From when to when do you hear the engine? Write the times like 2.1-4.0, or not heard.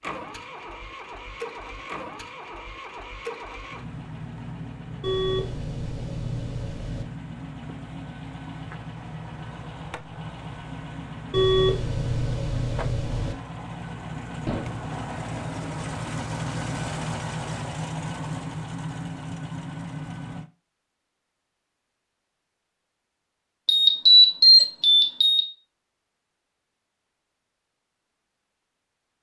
0.0-20.5.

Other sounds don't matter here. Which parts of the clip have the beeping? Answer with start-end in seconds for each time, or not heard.
5.0-7.0, 11.3-13.3, 23.6-25.4.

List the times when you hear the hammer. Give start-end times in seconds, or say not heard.
14.4-14.9.